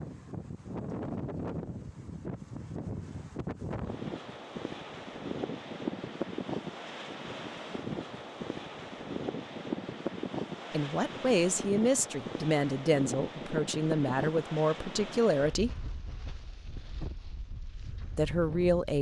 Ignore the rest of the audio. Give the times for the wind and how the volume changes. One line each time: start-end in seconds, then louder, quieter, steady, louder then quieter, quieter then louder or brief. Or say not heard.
0.0-18.9 quieter.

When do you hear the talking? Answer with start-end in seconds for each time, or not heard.
10.7-15.7, 18.1-18.9.